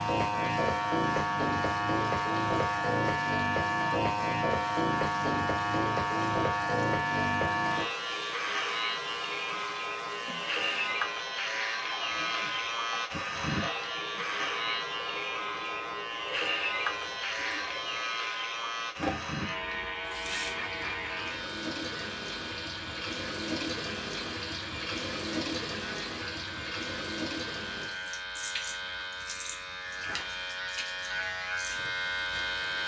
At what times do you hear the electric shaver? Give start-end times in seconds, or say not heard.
0.0-32.8.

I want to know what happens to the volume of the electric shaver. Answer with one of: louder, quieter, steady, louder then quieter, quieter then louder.
quieter.